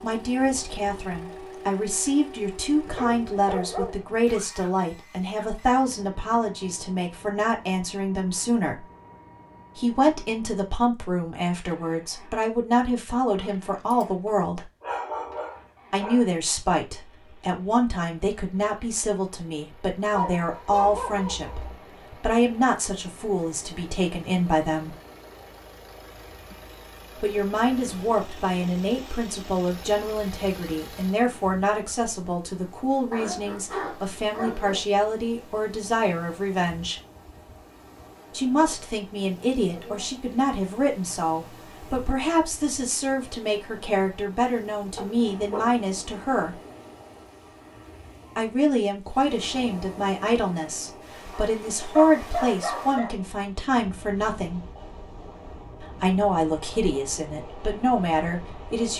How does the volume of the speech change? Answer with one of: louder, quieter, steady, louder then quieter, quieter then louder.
steady.